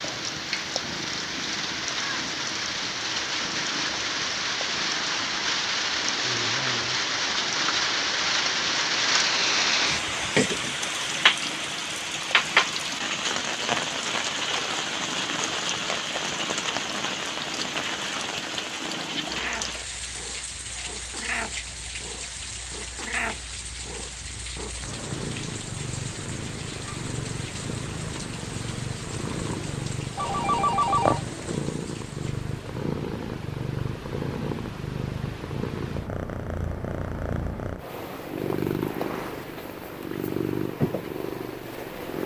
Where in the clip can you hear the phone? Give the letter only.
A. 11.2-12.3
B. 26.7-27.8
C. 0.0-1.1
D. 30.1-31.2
D.